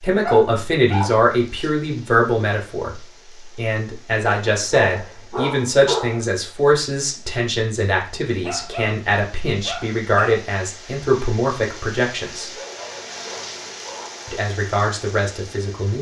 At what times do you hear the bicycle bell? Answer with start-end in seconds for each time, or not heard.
not heard.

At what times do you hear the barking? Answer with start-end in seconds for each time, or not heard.
0.2-1.7, 4.5-6.2, 8.4-10.4, 12.3-14.2.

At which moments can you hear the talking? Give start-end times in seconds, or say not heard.
0.0-12.5, 14.2-15.9.